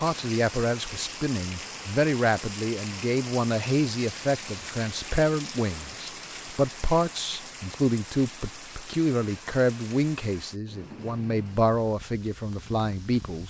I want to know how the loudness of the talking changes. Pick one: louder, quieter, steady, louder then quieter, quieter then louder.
steady.